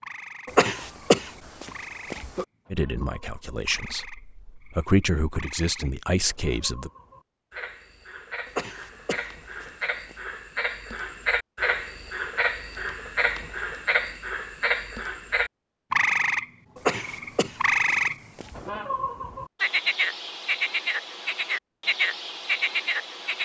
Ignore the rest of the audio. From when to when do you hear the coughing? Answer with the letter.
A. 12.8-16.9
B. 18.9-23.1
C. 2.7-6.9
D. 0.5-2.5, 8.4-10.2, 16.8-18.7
D.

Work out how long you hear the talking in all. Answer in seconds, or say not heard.
4 s.